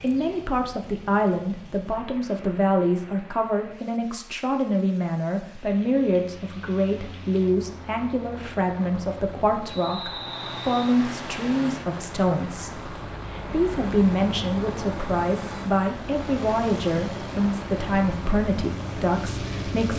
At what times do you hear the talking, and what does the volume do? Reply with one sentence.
The talking can be heard from 0.0 to 19.9 s, at a steady volume.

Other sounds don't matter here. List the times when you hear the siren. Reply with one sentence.
The siren can't be heard in this clip.